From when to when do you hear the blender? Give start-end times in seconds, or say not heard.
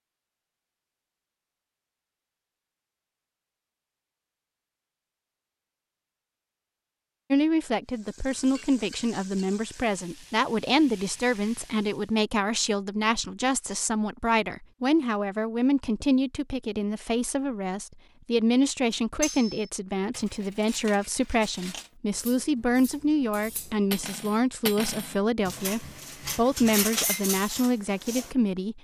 not heard.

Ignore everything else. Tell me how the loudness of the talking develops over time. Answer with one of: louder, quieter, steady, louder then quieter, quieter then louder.
steady.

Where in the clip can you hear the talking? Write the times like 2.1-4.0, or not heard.
7.3-28.7.